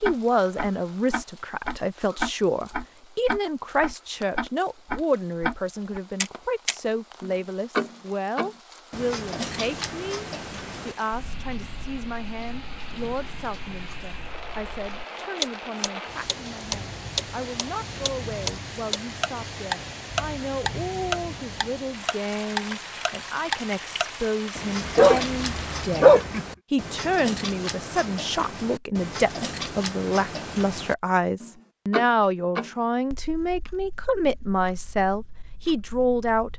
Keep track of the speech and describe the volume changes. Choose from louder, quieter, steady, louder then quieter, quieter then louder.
quieter then louder.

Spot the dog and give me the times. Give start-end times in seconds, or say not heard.
24.9-26.4.